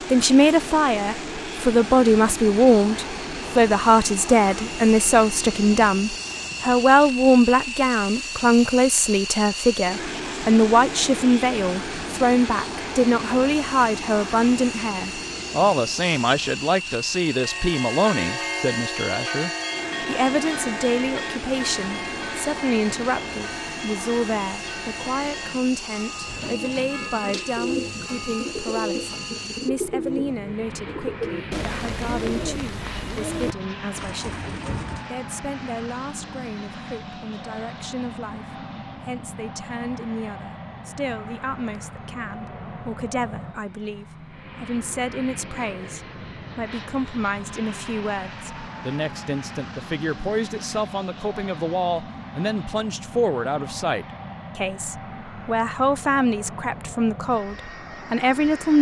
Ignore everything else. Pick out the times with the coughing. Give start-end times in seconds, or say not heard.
not heard.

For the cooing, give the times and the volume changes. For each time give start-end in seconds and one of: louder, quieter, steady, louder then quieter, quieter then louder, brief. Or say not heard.
26.2-35.1 steady.